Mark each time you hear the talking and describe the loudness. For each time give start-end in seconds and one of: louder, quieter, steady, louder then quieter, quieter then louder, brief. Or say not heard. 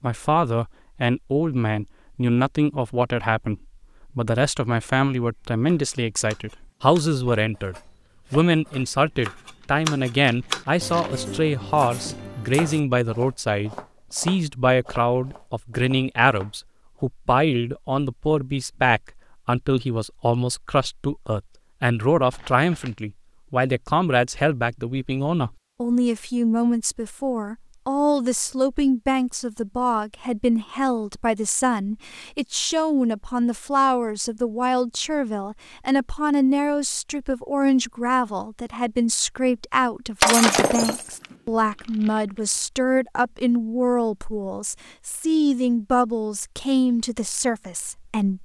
0.0-48.4 steady.